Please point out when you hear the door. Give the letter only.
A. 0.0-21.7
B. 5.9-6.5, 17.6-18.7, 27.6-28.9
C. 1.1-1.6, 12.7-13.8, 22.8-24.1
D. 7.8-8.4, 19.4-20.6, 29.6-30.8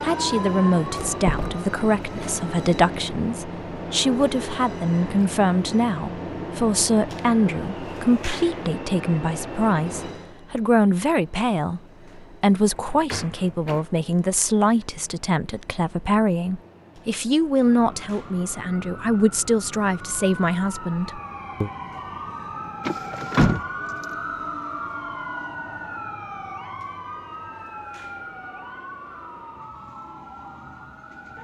C.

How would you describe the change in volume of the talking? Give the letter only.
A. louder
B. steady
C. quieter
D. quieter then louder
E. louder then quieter
B.